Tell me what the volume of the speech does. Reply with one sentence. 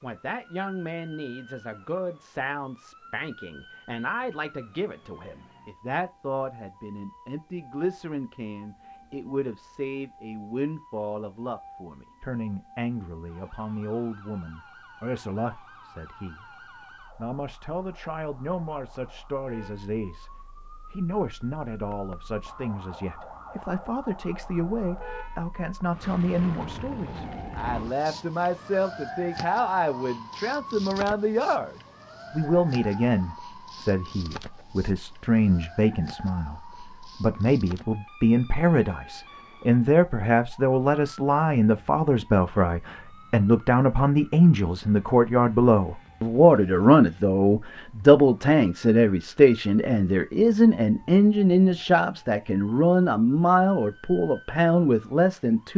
The loudness of the speech goes up.